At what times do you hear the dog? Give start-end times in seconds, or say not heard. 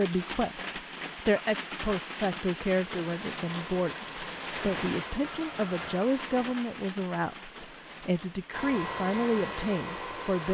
not heard.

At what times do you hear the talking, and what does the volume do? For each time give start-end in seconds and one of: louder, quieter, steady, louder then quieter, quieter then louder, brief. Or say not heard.
0.0-10.4 steady.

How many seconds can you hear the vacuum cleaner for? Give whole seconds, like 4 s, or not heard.
5 s.